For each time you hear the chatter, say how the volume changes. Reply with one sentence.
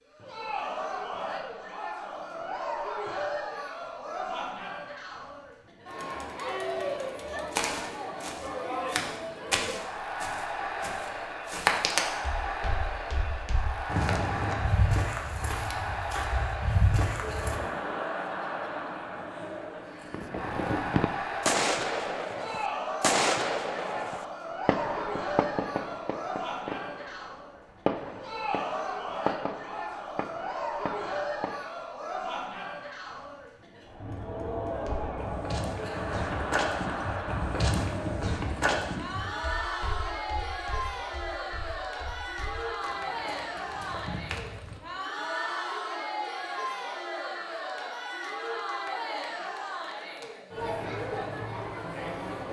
The chatter can be heard from 0.1 to 52.4 s, at a steady volume.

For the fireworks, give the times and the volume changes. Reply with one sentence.
The fireworks can be heard from 20.1 to 31.7 s, getting quieter.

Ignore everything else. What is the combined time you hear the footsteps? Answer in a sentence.
You can hear the footsteps for 20 seconds altogether.